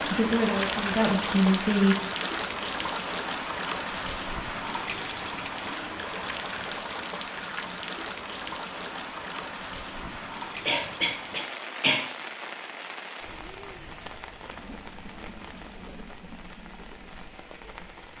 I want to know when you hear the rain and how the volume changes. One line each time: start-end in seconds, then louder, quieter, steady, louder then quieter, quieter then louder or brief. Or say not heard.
0.0-18.1 quieter.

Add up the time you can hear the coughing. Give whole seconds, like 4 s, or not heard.
2 s.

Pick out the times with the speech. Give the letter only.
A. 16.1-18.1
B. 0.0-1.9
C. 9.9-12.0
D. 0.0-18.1
B.